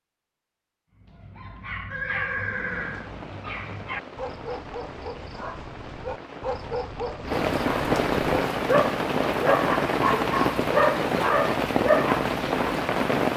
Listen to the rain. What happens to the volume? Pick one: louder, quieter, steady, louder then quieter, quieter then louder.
louder.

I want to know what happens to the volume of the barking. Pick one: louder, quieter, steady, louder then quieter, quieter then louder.
louder.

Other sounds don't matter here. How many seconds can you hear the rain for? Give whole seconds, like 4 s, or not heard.
11 s.